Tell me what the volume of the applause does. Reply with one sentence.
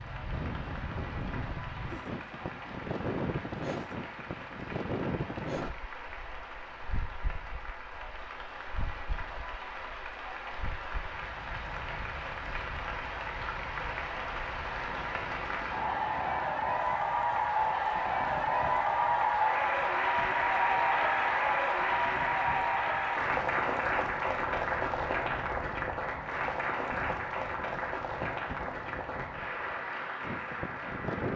The volume of the applause goes up, then down.